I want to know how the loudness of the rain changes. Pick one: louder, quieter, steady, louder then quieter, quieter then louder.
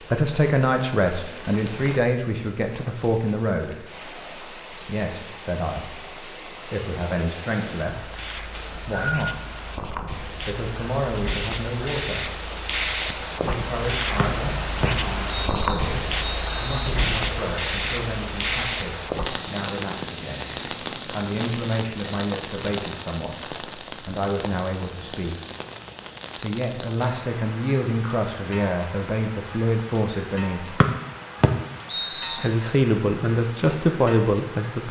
louder then quieter.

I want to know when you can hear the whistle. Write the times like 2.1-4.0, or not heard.
8.5-9.2, 14.2-16.9, 30.8-32.5.